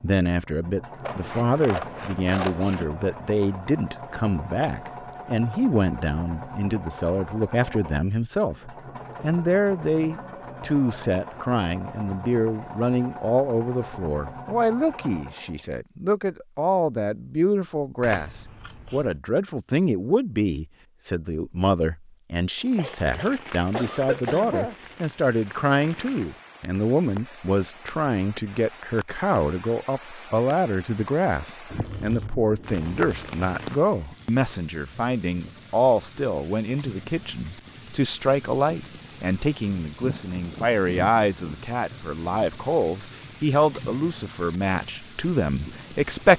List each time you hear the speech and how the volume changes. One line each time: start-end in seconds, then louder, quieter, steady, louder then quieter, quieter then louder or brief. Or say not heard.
0.0-46.3 steady.